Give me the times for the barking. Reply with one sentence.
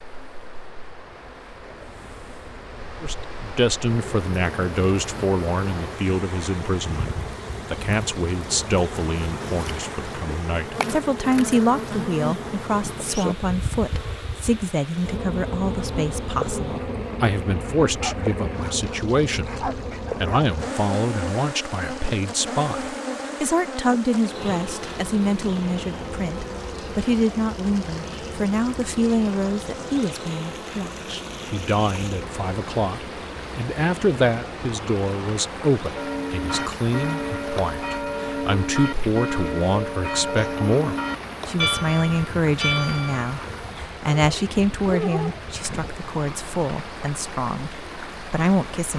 The barking can be heard from 17.9 to 20.5 s and from 44.1 to 46.0 s.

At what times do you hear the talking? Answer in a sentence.
You can hear the talking from 3.0 to 7.1 s, from 7.7 to 47.7 s and from 48.3 to 48.9 s.